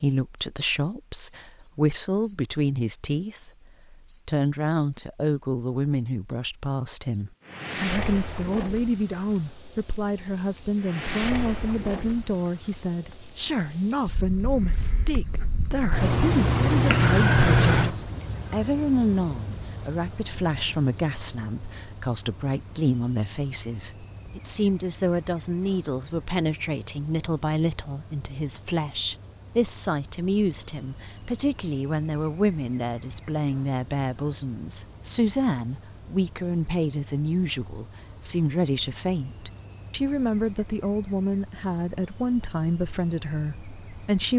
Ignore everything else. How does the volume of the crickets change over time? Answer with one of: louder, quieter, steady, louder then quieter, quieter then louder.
quieter.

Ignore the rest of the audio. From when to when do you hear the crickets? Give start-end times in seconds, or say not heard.
0.0-44.3.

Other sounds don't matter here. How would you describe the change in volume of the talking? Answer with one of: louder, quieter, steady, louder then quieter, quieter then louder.
steady.